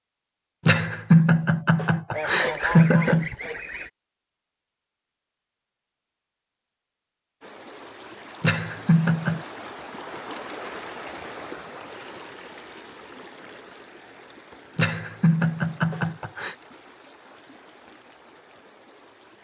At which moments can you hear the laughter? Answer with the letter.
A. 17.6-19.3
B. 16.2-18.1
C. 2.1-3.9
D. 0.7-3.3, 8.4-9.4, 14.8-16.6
D.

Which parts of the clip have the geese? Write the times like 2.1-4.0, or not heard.
2.1-3.9.